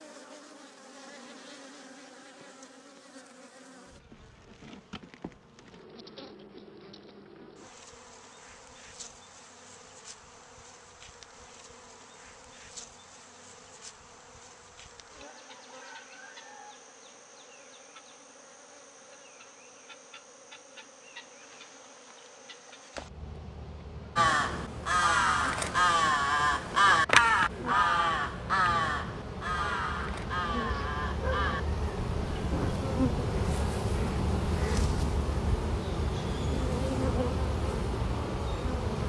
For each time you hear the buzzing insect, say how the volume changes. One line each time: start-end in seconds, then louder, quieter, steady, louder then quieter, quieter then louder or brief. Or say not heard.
0.0-39.0 louder.